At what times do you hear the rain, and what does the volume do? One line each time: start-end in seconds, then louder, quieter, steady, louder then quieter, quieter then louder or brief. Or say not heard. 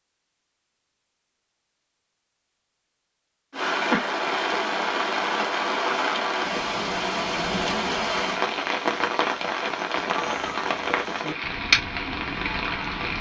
3.5-13.1 steady.